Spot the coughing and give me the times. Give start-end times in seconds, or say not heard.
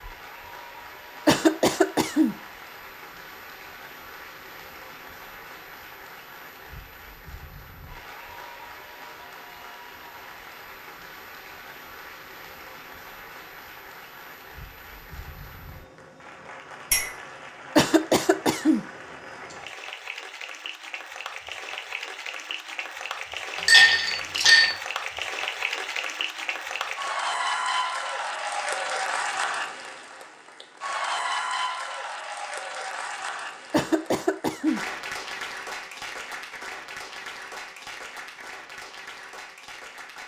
1.2-2.4, 17.8-18.9, 33.7-34.8.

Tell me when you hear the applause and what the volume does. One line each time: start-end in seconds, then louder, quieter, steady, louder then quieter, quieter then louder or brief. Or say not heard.
0.0-40.2 louder then quieter.